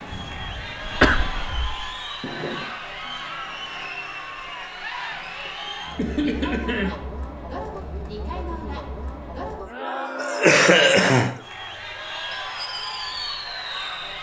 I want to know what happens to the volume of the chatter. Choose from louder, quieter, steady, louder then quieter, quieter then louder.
steady.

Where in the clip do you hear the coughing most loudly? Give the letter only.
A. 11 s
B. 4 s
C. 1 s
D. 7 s
A.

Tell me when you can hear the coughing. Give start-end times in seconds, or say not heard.
0.3-1.2, 6.0-7.0, 10.2-11.3.